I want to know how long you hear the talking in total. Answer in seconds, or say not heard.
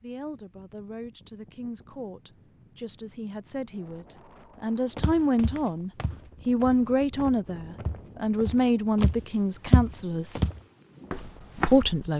11 s.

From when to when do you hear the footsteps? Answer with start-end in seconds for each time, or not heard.
5.0-12.1.